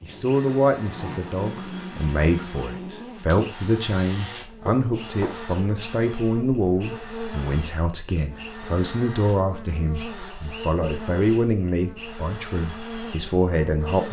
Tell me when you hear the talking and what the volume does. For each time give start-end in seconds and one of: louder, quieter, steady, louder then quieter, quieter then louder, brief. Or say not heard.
0.0-14.0 steady.